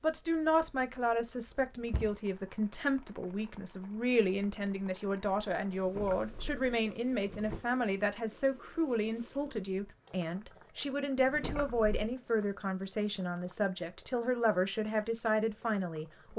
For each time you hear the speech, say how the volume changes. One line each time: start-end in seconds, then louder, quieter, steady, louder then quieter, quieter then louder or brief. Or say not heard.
0.0-16.3 steady.